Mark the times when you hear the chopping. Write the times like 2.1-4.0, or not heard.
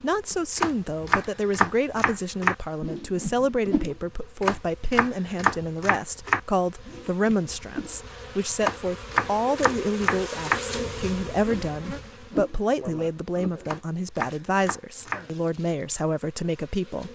0.6-2.5, 4.4-6.4, 8.6-10.6, 13.7-15.2.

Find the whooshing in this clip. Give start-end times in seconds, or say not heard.
2.8-4.0, 6.8-8.0, 11.4-12.6.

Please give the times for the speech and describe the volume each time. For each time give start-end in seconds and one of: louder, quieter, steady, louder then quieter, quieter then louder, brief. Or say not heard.
0.0-17.0 steady.